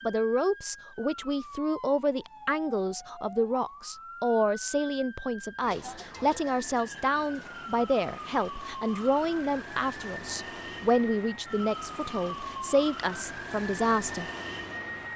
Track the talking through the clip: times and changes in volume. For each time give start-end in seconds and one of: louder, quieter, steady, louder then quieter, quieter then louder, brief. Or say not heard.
0.1-14.3 steady.